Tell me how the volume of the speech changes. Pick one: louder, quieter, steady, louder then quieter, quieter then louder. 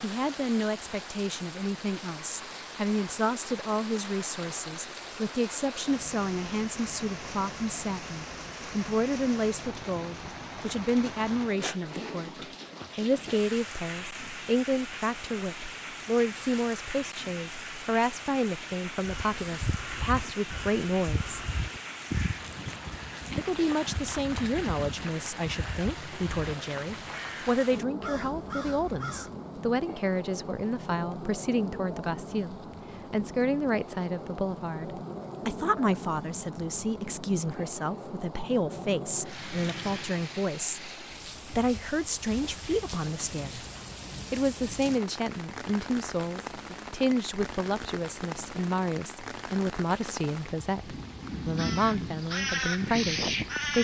steady.